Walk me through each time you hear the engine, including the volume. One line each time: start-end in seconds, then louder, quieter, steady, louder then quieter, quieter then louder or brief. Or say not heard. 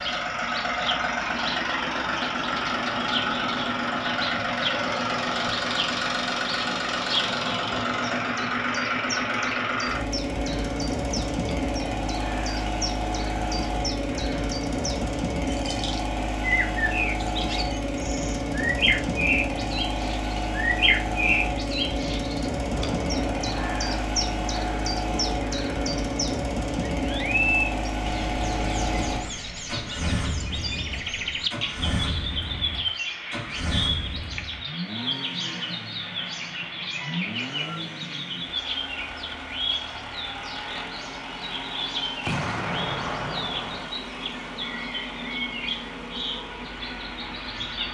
0.0-47.8 quieter.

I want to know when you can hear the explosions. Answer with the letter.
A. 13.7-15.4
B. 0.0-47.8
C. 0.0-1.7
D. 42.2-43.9
D.